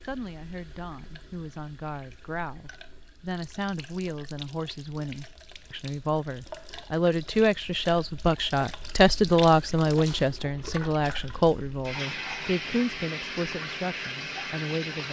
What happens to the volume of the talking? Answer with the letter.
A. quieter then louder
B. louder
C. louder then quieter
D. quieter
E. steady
C.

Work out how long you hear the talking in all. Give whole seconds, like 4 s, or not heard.
15 s.